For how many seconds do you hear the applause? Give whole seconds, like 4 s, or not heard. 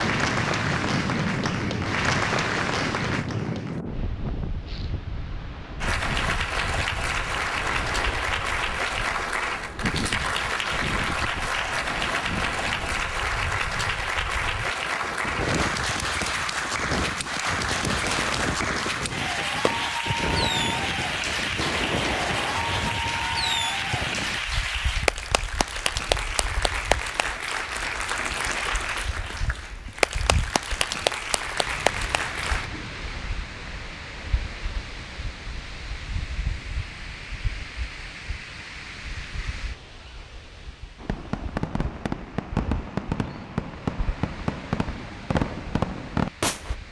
31 s.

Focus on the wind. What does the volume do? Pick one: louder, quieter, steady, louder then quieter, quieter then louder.
quieter.